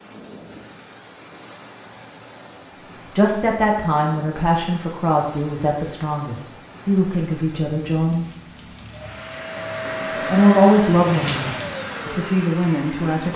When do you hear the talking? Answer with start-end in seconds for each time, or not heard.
3.1-8.2, 10.2-13.3.